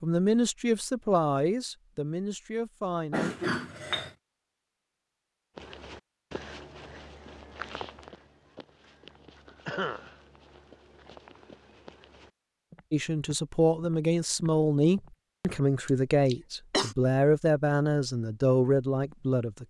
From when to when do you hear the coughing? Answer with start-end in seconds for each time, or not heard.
3.1-4.1, 9.7-10.2, 15.8-16.9.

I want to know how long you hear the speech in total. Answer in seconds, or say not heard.
10 s.